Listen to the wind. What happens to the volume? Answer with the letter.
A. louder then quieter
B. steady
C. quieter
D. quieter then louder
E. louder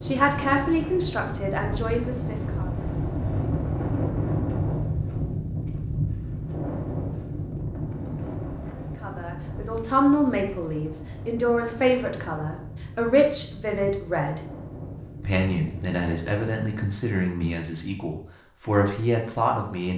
C.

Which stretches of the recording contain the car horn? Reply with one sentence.
You can't hear the car horn here.